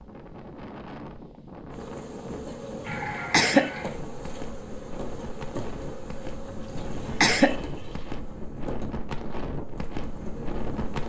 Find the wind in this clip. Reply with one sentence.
You can hear the wind from 0.0 to 11.0 s.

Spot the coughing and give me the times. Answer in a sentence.
You can hear the coughing from 2.9 to 3.7 s and from 6.8 to 7.5 s.